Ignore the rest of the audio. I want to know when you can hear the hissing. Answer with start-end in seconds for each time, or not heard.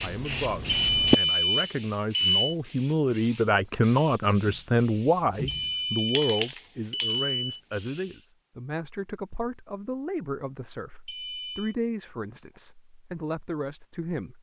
0.0-8.2.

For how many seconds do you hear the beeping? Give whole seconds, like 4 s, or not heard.
5 s.